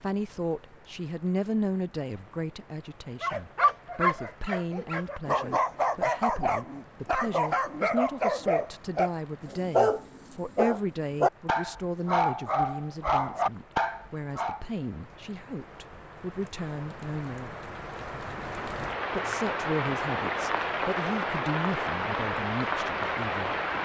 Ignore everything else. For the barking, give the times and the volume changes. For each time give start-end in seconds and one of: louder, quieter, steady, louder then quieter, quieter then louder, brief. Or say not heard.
3.2-14.6 steady.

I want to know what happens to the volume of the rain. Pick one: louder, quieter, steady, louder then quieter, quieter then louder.
louder.